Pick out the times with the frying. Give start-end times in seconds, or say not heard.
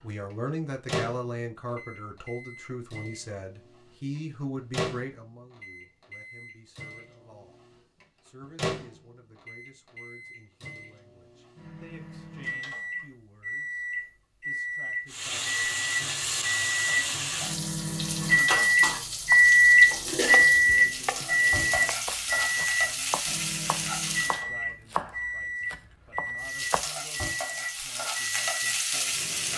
15.1-24.4, 26.4-29.5.